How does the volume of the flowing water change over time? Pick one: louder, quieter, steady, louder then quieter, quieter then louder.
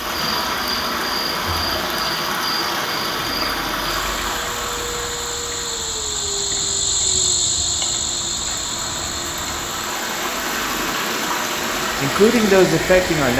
quieter then louder.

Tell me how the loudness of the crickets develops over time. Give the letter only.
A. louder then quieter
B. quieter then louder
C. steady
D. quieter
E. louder
A.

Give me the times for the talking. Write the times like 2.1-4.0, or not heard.
12.0-13.3.